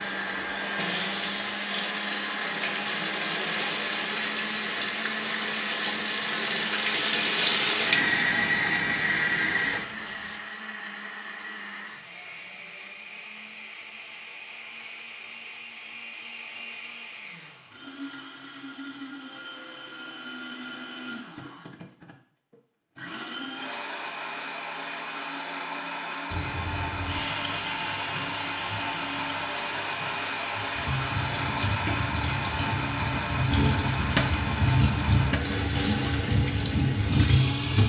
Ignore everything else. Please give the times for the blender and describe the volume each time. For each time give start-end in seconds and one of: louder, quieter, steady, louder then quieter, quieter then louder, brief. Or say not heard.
0.0-37.8 quieter then louder.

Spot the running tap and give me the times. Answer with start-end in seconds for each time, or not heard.
0.0-10.4, 26.3-37.8.